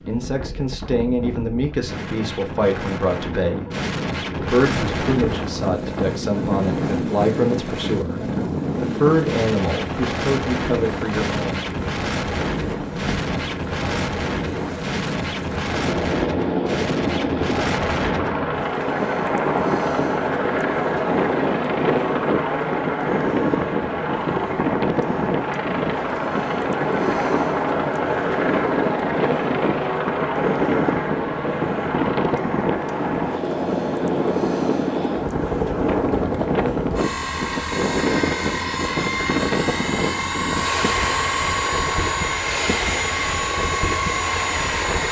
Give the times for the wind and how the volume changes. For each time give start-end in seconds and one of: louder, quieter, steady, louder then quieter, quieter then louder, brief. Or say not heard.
0.0-45.0 steady.